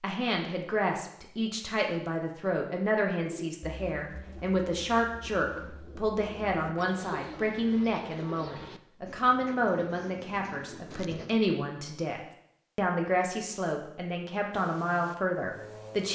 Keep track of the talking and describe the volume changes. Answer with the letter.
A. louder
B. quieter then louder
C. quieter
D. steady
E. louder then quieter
D.